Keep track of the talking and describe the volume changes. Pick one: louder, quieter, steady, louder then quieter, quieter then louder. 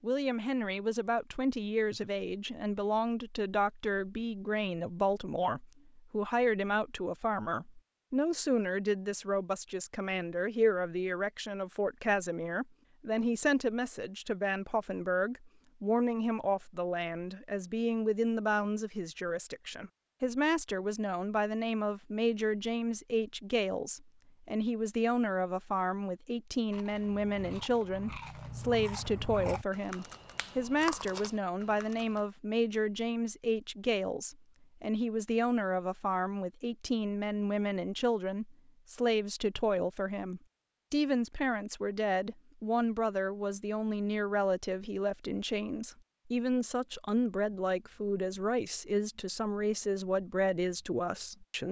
steady.